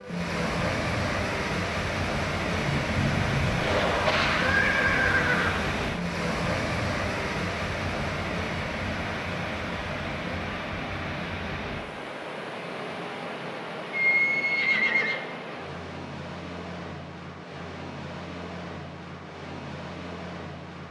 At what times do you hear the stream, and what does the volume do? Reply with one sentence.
The stream can be heard from 0.0 to 20.8 s, getting quieter.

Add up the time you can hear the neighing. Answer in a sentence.
The neighing can be heard for 3 seconds in total.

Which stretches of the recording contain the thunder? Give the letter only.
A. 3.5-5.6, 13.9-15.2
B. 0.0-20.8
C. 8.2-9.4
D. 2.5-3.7
D.